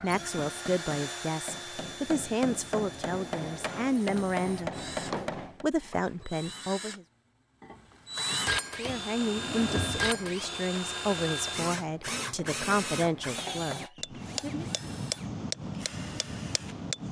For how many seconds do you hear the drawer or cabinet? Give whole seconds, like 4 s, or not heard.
3 s.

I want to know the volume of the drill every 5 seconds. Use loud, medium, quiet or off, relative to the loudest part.
medium, loud, loud, quiet.